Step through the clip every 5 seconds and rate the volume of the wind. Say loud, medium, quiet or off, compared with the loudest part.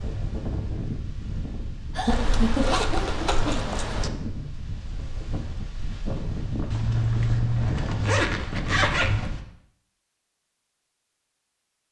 loud, loud, off.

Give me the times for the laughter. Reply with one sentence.
The laughter can be heard from 1.9 to 3.8 s.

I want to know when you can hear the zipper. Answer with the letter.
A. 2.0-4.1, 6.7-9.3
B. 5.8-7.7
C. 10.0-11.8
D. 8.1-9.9
A.